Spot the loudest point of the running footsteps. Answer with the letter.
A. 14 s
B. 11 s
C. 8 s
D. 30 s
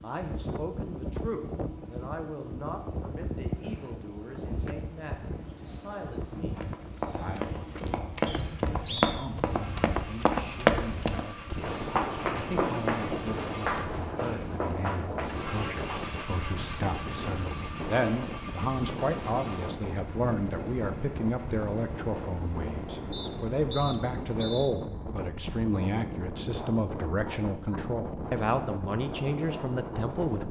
B.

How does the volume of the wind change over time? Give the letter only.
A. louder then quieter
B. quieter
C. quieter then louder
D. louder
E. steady
E.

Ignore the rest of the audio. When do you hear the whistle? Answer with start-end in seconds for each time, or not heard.
8.2-9.2, 23.1-24.7.